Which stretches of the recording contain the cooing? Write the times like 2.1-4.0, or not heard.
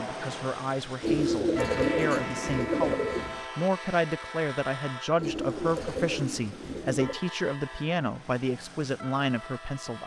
1.0-3.4, 5.2-7.2.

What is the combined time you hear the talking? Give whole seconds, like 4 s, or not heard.
10 s.